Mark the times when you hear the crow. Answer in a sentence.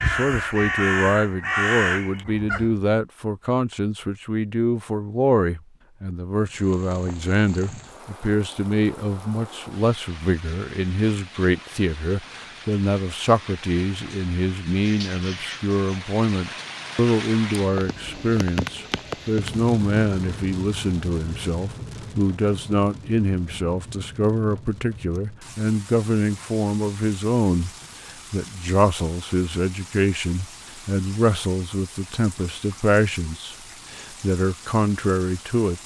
You can hear the crow from 0.0 to 2.8 s.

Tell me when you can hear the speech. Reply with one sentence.
The speech can be heard from 0.0 to 27.7 s and from 28.3 to 35.8 s.